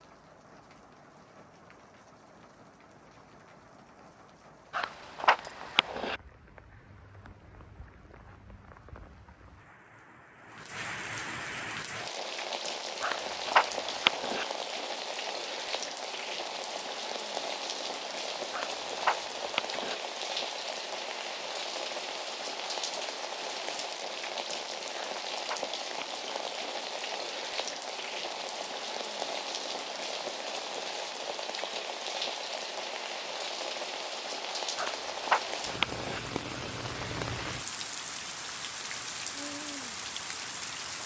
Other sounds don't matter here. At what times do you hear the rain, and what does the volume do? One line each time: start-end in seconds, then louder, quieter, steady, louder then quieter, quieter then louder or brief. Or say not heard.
0.0-41.0 louder.